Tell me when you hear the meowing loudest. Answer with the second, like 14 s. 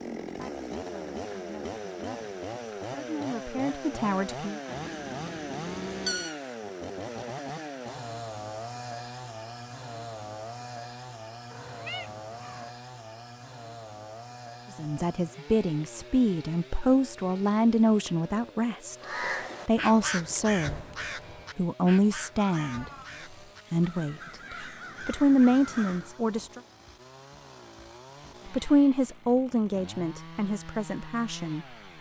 6 s.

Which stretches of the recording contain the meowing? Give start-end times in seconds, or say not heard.
4.7-6.3, 11.5-12.7, 22.4-23.1.